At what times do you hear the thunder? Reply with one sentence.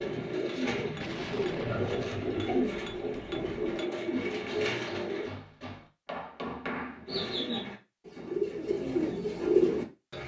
You can hear the thunder from 1.0 to 3.9 s.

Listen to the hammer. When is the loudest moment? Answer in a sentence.
The volume of the hammer peaks at 7 seconds.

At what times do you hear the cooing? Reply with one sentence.
You can hear the cooing from 0.0 to 5.3 s and from 7.0 to 10.2 s.